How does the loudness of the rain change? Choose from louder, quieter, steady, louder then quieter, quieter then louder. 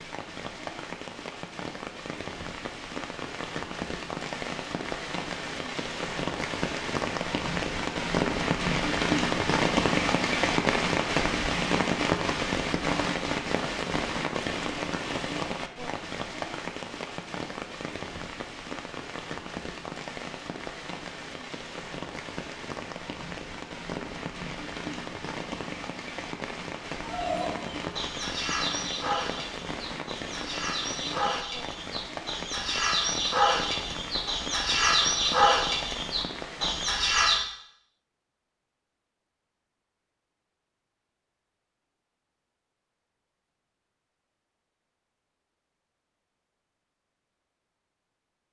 louder then quieter.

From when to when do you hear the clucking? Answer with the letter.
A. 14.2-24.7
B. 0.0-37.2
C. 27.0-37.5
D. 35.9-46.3
C.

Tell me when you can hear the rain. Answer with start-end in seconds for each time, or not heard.
0.0-37.2.